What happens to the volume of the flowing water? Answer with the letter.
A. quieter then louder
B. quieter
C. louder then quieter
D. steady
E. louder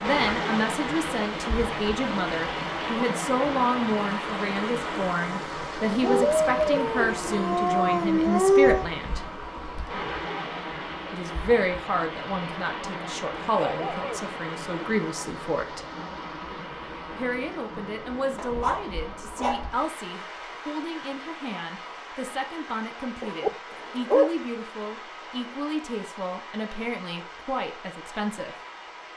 B.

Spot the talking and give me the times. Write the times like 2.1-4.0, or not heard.
0.0-9.2, 11.1-15.8, 17.1-28.6.